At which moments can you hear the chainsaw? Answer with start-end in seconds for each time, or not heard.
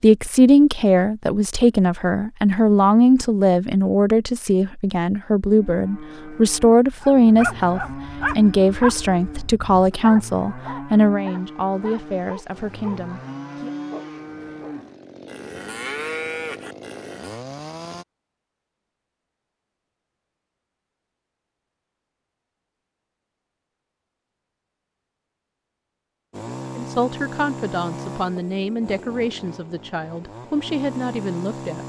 11.2-18.1, 26.3-31.8.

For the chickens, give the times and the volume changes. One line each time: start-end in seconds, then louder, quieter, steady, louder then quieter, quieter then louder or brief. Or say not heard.
not heard.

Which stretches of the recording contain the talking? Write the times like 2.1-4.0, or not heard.
0.0-13.7, 26.8-31.8.